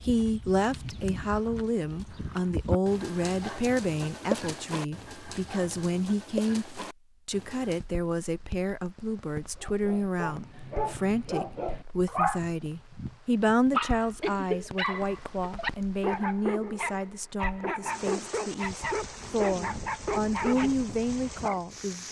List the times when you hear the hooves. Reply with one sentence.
The hooves can be heard from 0.0 to 7.9 s.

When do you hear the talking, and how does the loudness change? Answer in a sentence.
The talking can be heard from 0.0 to 22.0 s, at a steady volume.